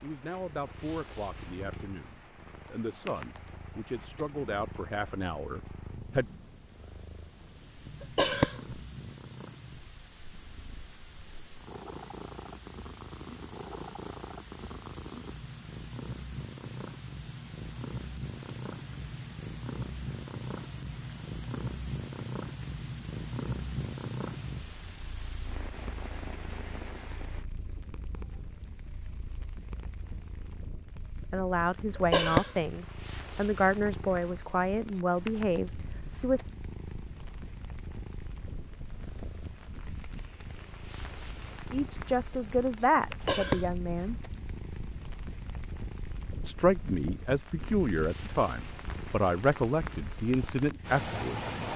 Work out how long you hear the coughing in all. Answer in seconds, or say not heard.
3 s.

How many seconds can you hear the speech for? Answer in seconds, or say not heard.
19 s.